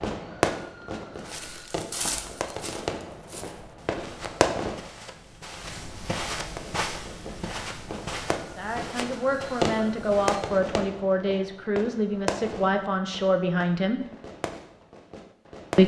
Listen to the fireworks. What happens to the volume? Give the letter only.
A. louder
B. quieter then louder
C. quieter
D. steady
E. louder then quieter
C.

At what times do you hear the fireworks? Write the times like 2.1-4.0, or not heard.
0.0-4.8, 6.5-15.8.